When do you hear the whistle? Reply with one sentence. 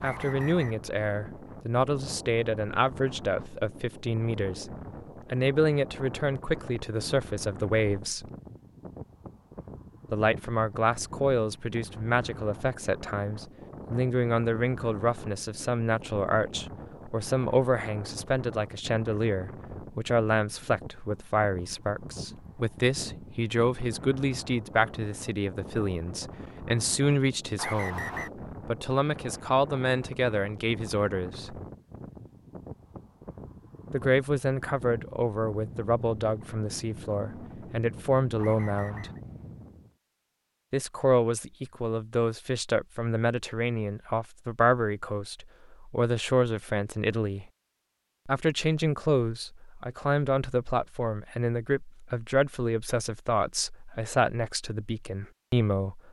You can hear the whistle from 0.0 to 0.8 s, from 27.6 to 28.3 s and from 38.4 to 39.2 s.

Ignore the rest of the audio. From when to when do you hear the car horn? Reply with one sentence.
You can't hear the car horn here.